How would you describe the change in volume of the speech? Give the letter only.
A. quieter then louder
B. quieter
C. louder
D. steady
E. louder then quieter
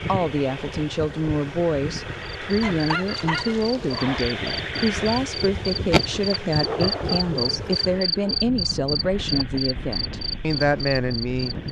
D.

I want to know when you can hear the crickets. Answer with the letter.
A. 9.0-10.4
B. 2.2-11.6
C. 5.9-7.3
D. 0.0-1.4
B.